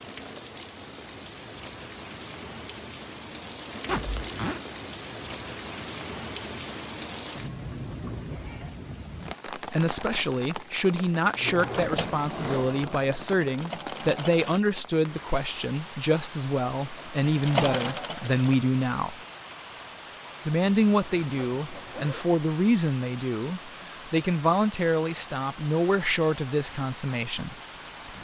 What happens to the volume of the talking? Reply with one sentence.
The volume of the talking stays about the same.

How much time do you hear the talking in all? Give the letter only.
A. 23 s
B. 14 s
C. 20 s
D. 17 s
D.